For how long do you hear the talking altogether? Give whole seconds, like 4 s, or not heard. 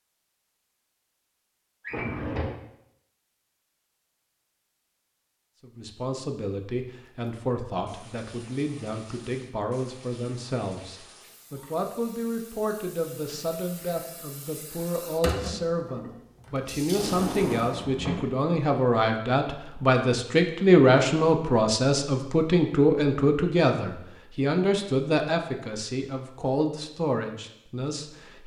23 s.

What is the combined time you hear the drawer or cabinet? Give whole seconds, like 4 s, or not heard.
2 s.